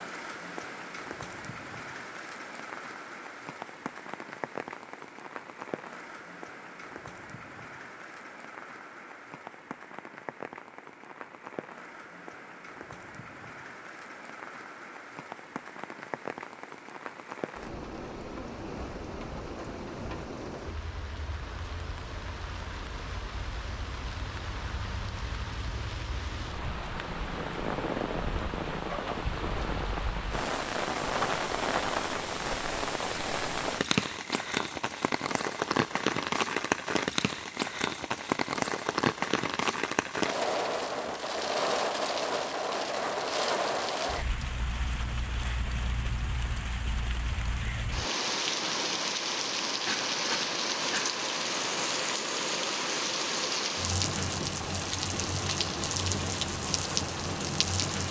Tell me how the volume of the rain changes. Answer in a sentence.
The loudness of the rain goes up.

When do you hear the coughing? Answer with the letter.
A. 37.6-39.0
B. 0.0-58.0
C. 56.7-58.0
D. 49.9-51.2
D.